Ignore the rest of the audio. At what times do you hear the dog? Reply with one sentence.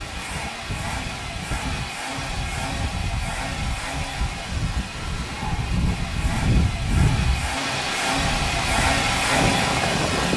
You can't hear the dog here.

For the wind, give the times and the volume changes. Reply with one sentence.
You can hear the wind from 0.0 to 10.3 s, getting louder.